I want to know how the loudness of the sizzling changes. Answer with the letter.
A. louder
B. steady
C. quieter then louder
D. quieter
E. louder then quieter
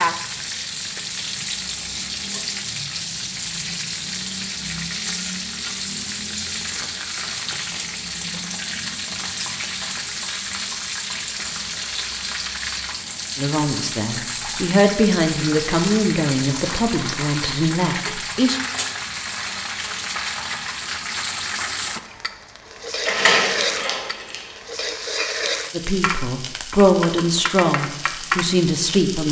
B.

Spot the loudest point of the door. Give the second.
23 s.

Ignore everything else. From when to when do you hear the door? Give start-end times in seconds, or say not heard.
23.0-24.6.